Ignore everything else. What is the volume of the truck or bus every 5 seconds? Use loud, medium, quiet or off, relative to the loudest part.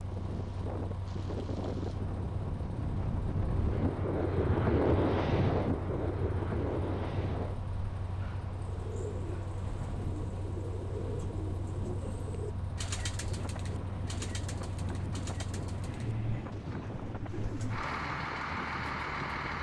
medium, medium, medium, loud.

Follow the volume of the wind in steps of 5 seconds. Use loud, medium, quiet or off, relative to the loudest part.
loud, loud, medium, medium.